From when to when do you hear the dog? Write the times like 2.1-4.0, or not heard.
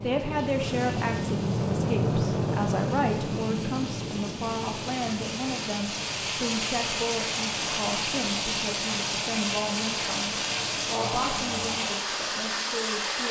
not heard.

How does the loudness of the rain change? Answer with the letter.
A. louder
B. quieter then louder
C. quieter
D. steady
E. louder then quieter
A.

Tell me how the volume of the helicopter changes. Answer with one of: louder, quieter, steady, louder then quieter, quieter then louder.
quieter.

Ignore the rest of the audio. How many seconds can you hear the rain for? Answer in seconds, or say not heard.
13 s.